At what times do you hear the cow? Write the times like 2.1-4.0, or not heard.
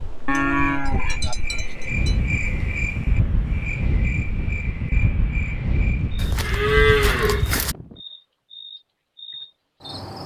0.2-2.1, 6.2-7.8.